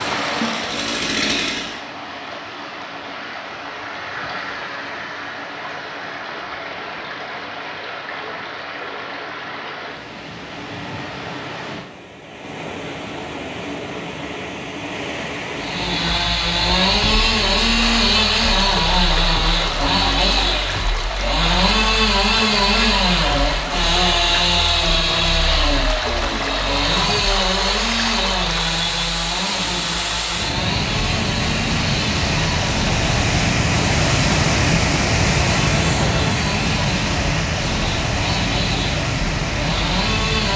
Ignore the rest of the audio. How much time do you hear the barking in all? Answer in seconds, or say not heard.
not heard.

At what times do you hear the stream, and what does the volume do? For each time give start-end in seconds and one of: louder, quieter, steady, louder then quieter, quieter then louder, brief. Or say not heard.
0.0-40.5 louder.